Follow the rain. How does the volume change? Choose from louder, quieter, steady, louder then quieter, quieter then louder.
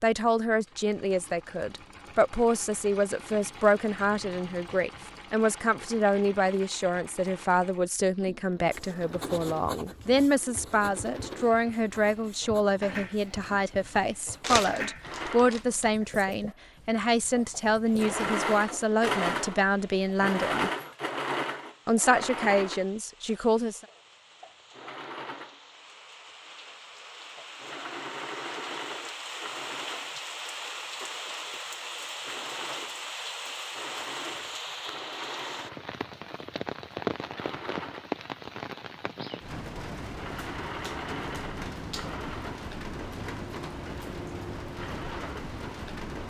louder.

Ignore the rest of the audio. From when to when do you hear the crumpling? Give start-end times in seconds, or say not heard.
14.4-15.8.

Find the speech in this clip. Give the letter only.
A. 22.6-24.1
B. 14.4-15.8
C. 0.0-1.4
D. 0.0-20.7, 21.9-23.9
D.